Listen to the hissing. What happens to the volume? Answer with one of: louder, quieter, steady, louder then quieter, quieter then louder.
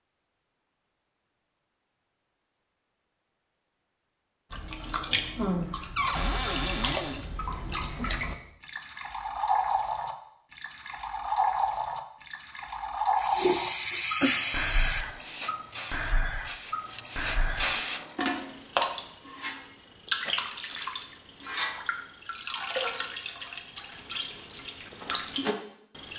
quieter then louder.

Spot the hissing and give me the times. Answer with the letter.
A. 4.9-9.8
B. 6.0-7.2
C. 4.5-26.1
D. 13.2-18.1
D.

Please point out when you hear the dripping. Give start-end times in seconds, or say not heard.
4.5-26.1.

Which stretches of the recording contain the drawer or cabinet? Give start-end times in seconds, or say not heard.
6.0-7.2.